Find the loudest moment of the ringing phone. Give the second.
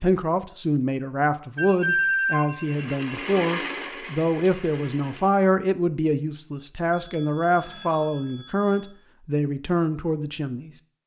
2 s.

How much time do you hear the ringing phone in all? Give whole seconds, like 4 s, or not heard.
4 s.